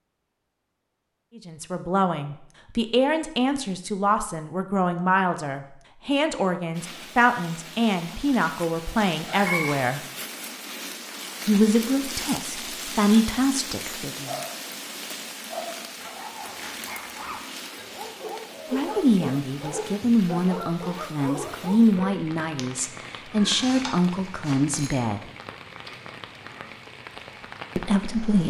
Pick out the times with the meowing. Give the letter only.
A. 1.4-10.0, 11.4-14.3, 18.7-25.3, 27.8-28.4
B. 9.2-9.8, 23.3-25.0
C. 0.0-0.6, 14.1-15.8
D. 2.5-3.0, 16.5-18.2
B.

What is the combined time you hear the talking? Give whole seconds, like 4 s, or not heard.
19 s.